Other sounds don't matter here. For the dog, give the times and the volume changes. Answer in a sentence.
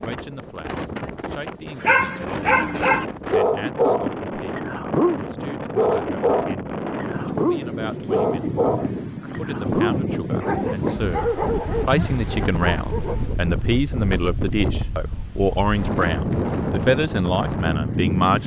You can hear the dog from 1.8 to 13.3 s, getting quieter.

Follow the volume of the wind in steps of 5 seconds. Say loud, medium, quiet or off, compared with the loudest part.
medium, loud, loud, loud.